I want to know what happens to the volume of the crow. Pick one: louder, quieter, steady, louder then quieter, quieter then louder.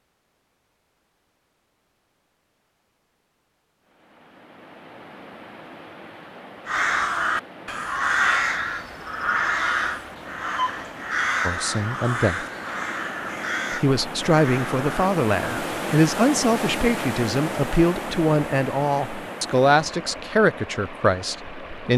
quieter.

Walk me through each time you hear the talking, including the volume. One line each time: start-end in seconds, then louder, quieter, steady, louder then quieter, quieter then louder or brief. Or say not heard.
11.4-12.4 brief
13.7-21.9 steady.